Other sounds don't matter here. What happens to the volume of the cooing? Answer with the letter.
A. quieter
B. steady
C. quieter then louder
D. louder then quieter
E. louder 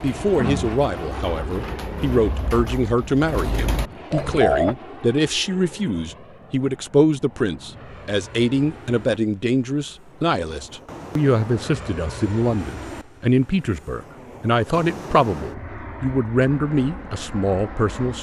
C.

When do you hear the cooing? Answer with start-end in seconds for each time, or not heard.
0.0-4.8.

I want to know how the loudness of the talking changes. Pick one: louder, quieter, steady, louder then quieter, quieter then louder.
steady.